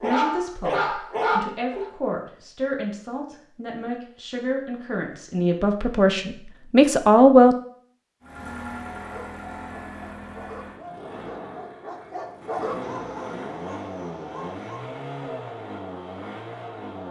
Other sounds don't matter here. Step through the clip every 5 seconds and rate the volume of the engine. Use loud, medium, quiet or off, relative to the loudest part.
off, loud, loud, loud.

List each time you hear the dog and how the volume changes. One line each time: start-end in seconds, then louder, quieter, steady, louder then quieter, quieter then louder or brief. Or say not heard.
0.0-1.9 brief
9.1-14.8 louder then quieter.